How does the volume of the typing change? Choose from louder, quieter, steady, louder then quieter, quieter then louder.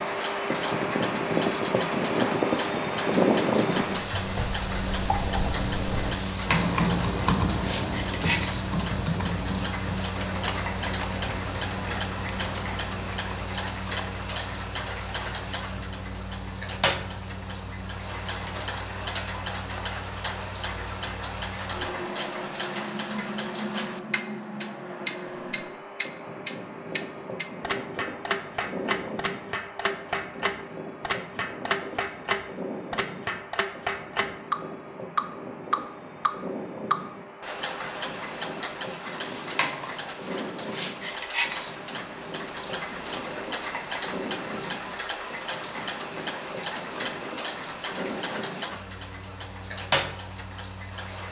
louder then quieter.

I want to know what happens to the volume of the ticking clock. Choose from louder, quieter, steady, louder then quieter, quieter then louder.
steady.